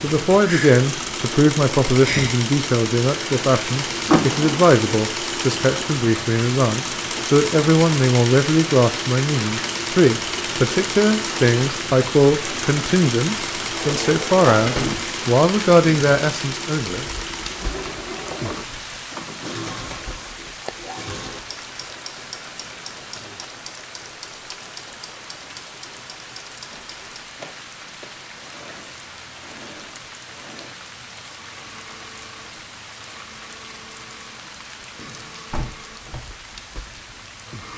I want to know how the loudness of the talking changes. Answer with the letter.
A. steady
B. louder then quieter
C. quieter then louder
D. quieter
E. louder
A.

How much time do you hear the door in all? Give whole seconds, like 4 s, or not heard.
3 s.